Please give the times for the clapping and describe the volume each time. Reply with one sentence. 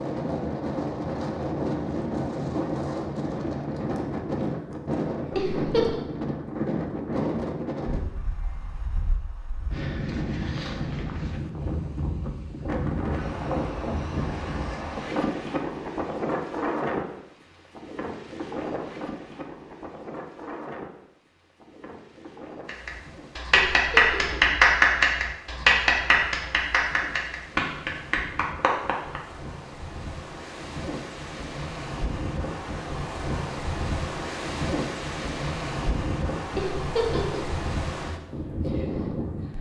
The clapping can be heard from 22.6 to 29.2 s, getting quieter.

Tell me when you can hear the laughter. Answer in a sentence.
You can hear the laughter from 5.3 to 6.0 s, from 23.5 to 24.4 s and from 36.5 to 37.5 s.